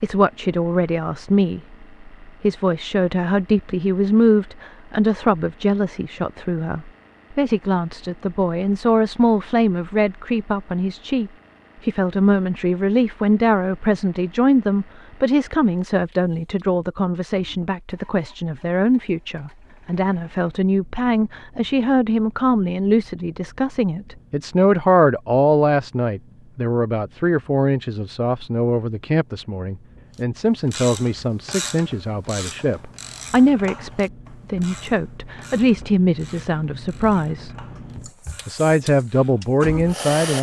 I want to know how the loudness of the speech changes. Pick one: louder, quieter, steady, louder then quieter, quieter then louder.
steady.